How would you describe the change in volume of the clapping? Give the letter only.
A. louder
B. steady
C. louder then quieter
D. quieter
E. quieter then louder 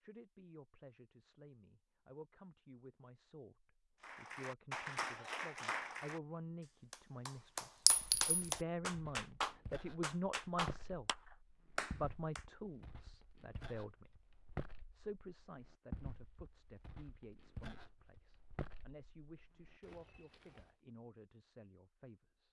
E.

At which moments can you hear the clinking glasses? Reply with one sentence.
The clinking glasses can be heard from 7.8 to 8.6 s.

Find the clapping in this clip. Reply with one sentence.
The clapping can be heard from 4.0 to 12.4 s.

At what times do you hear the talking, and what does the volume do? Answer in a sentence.
You can hear the talking from 0.0 to 11.1 s, getting louder; briefly from 11.8 to 14.2 s; and from 14.9 to 22.4 s, at a steady volume.